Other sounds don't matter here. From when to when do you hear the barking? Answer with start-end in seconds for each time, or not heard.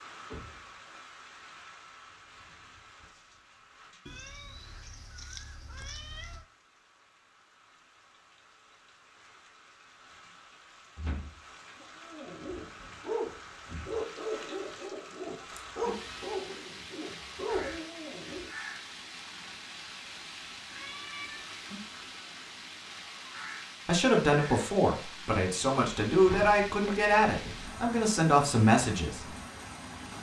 12.0-18.5.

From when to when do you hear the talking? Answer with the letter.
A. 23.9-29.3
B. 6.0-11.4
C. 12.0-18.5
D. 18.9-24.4
A.